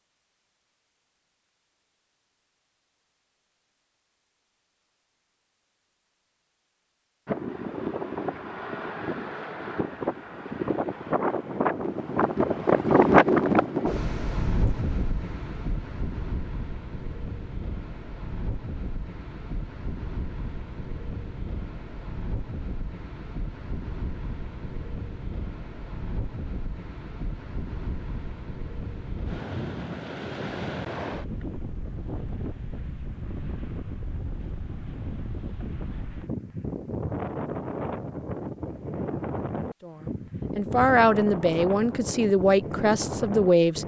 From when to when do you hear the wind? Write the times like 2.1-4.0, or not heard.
7.2-43.8.